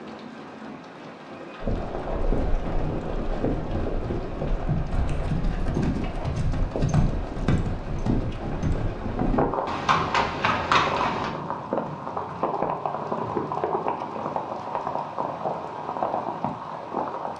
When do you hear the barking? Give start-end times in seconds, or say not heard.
not heard.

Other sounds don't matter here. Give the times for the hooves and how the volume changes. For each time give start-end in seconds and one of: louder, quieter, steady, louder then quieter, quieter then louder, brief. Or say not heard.
1.6-11.3 louder.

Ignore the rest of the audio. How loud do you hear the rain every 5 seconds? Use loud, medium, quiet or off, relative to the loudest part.
medium, medium, loud, loud.